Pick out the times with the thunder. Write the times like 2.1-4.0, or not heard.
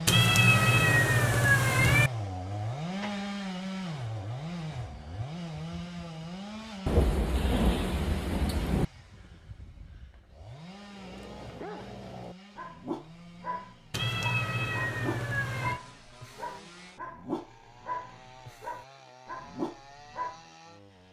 6.8-8.8.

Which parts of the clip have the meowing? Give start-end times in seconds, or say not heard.
0.1-2.1, 13.9-15.8.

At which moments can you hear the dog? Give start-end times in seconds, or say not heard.
10.9-20.4.